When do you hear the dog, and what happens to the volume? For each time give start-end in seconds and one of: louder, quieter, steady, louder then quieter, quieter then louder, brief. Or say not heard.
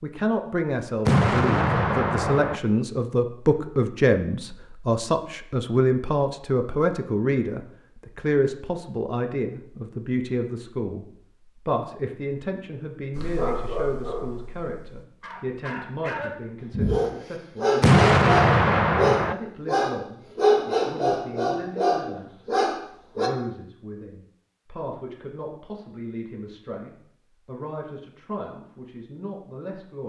13.2-23.3 louder.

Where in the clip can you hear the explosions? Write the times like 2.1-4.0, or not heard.
1.1-2.6, 17.8-19.4.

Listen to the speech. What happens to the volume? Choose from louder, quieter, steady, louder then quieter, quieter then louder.
quieter.